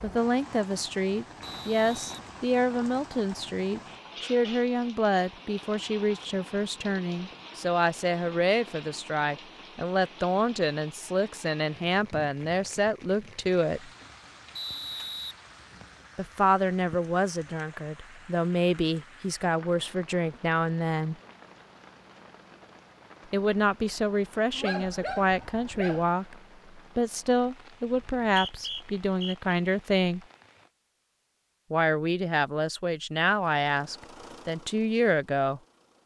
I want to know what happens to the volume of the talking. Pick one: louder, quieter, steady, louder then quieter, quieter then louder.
steady.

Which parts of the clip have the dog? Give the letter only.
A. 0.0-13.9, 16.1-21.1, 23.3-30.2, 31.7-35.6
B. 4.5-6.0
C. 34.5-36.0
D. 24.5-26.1
D.